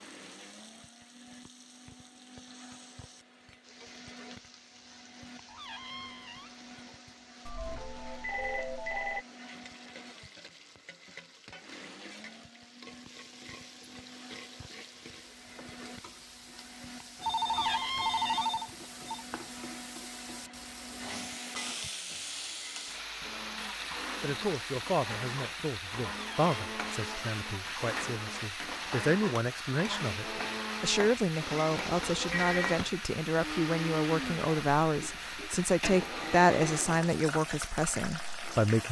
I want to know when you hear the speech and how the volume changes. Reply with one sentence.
The speech can be heard from 24.2 to 38.8 s, getting louder.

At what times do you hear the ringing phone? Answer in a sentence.
You can hear the ringing phone from 7.5 to 9.2 s, from 17.2 to 19.2 s and from 32.1 to 32.8 s.